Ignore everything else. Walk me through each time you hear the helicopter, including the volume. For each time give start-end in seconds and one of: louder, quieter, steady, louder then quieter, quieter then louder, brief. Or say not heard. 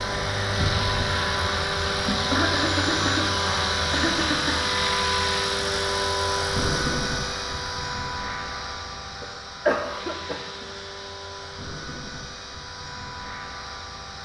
0.0-14.2 quieter.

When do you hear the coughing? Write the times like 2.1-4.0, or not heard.
2.0-4.7, 9.2-10.7.